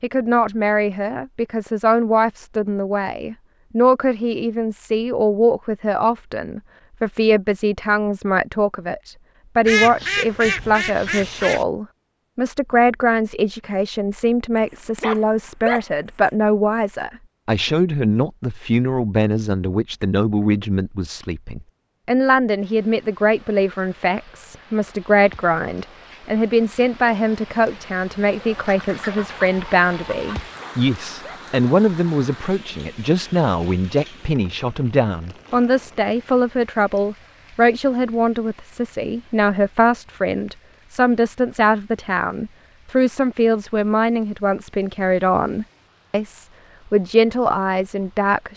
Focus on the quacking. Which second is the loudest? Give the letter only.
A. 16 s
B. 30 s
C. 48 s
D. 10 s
D.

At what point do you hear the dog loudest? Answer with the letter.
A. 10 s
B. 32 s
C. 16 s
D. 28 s
C.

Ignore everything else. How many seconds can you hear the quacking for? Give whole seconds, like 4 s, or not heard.
4 s.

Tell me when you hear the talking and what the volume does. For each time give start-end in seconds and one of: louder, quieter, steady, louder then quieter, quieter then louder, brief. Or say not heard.
0.0-48.5 steady.